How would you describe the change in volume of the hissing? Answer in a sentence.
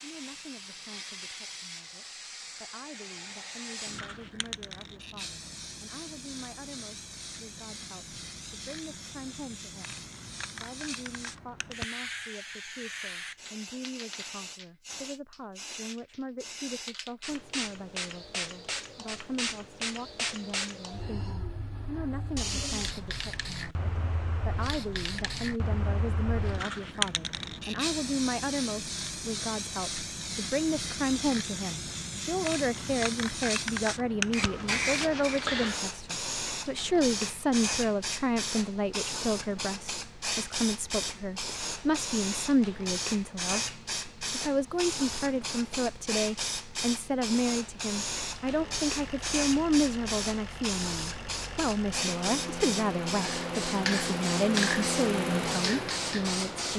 The volume of the hissing goes up.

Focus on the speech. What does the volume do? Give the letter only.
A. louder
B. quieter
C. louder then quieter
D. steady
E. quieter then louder
A.